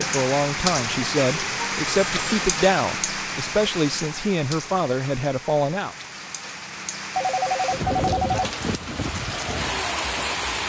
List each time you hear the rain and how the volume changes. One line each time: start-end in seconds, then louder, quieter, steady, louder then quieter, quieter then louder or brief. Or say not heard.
0.0-10.6 quieter then louder.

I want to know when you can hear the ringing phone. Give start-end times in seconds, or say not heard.
1.9-2.5, 7.2-8.4.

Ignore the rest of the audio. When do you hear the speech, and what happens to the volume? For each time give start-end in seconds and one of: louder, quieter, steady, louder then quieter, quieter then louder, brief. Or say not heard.
0.0-6.0 steady.